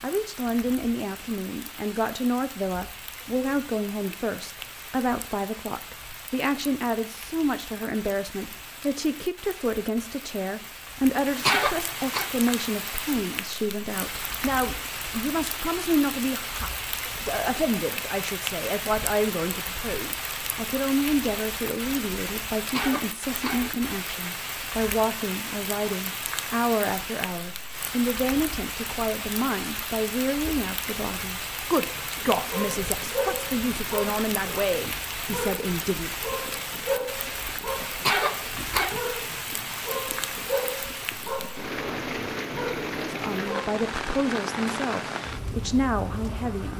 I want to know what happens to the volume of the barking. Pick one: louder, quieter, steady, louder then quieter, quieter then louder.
steady.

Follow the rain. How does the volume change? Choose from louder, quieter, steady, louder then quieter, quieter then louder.
louder.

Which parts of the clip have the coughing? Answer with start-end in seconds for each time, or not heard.
11.4-12.3, 22.7-23.8, 38.0-39.0.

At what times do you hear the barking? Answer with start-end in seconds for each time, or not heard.
31.9-43.8.